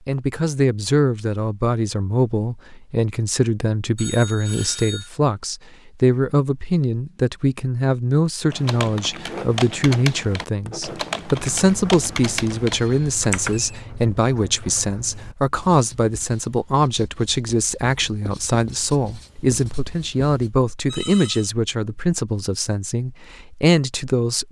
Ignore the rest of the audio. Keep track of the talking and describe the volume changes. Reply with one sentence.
The loudness of the talking stays about the same.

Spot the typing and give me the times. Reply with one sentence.
The typing can be heard from 8.5 to 13.6 s.